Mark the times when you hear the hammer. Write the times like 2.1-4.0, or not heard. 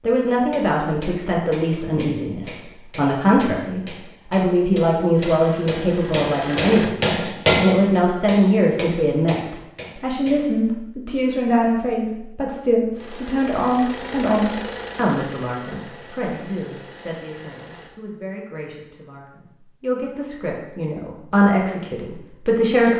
0.5-10.7.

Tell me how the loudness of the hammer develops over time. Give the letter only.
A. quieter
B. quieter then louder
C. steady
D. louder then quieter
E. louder
D.